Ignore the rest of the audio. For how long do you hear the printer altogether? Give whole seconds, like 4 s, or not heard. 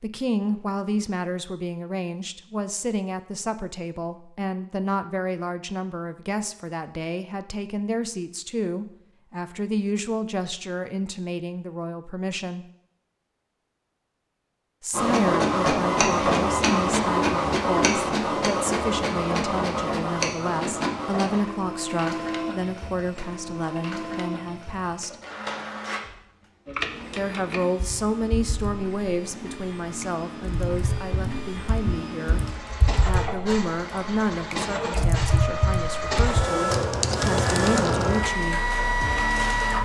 25 s.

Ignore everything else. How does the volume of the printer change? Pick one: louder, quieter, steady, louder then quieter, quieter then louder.
quieter then louder.